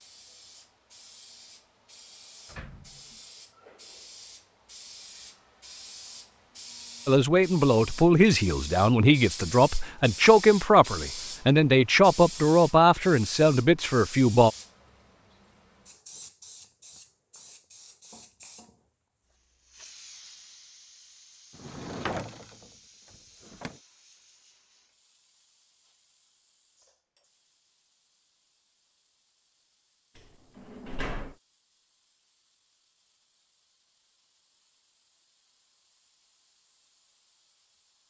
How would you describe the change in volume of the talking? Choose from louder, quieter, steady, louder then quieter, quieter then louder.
steady.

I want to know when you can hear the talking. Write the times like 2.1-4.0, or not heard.
7.0-14.5.